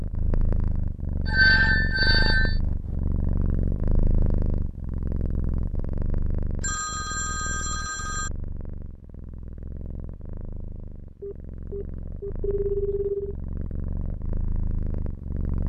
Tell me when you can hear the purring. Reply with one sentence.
The purring can be heard from 0.0 to 15.6 s.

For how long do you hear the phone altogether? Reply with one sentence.
You can hear the phone for 5 seconds altogether.